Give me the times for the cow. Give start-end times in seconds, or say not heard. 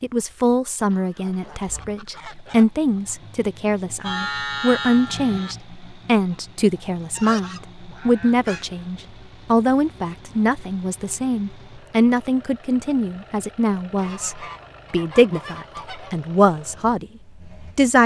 4.0-5.5.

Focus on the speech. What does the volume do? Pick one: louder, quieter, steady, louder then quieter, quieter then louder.
steady.